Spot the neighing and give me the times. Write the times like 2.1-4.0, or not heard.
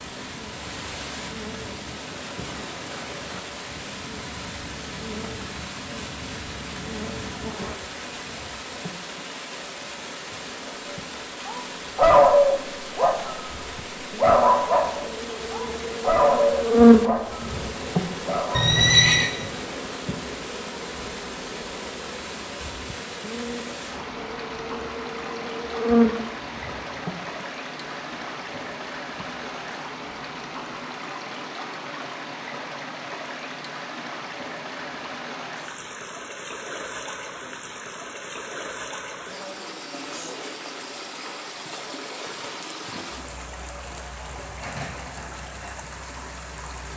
18.5-19.3.